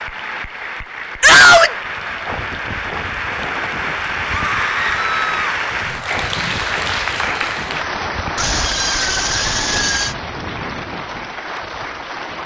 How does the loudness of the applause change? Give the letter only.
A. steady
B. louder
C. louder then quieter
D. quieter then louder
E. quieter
C.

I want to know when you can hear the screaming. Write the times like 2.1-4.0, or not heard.
1.2-1.8, 4.3-5.4, 8.3-10.2.